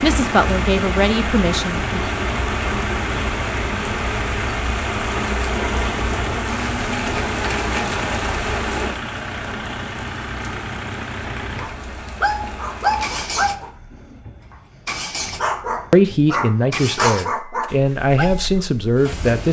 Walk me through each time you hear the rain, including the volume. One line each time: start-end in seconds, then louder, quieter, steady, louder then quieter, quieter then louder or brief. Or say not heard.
0.0-13.8 quieter.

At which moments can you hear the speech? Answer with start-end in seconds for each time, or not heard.
0.0-1.9, 15.9-19.4.